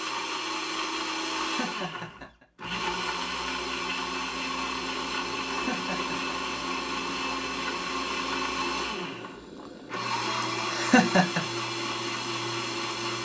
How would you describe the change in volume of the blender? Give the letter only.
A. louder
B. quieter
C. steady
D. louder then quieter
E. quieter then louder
C.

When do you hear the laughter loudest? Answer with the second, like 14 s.
11 s.